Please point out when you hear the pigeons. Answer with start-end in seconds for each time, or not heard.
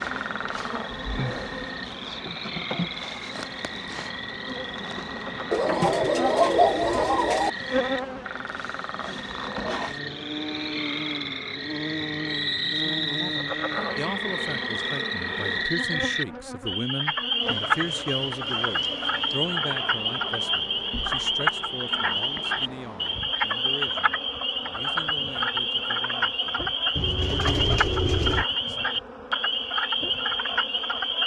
5.5-7.5, 26.9-28.4.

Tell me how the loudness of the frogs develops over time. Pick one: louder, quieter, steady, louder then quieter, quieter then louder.
louder.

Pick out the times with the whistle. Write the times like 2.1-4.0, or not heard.
12.2-13.4.